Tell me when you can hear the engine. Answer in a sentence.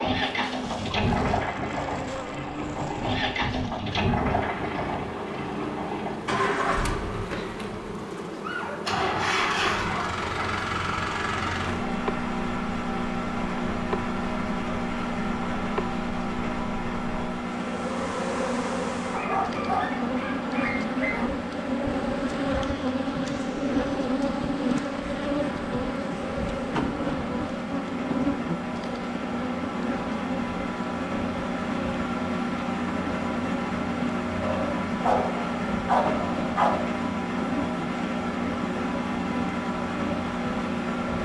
You can hear the engine from 0.0 to 41.2 s.